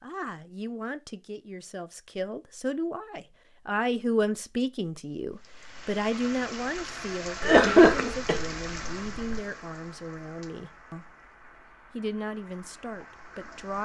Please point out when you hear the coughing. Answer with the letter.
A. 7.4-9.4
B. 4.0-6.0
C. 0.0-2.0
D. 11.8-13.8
A.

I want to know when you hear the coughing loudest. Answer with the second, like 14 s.
8 s.